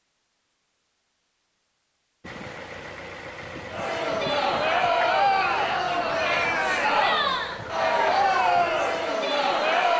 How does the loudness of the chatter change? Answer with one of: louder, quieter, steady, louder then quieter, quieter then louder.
steady.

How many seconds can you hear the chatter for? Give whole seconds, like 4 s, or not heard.
6 s.